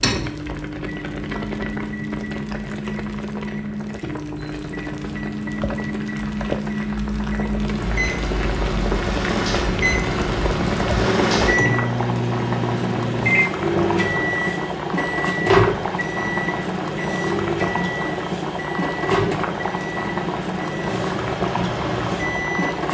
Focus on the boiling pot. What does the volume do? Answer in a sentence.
The volume of the boiling pot goes up.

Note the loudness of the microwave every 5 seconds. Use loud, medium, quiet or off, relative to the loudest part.
medium, loud, loud, loud, medium.